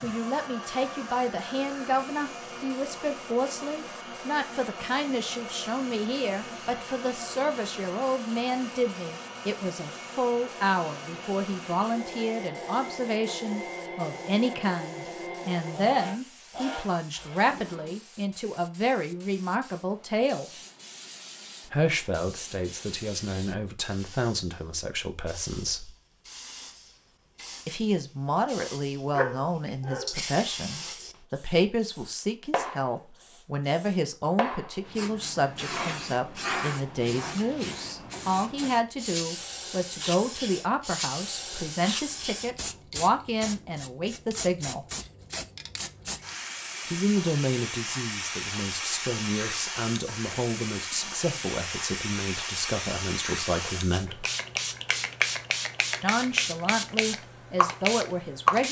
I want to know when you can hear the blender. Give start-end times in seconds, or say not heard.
0.0-18.0.